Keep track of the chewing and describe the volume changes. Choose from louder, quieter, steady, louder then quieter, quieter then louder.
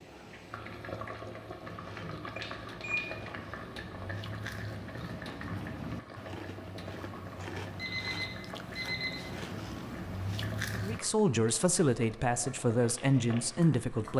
louder.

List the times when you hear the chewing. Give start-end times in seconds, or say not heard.
1.6-11.0.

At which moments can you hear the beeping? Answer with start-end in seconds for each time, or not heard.
2.4-3.0, 7.7-9.2.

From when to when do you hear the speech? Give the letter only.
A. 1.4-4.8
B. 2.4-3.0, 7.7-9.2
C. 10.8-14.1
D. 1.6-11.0
C.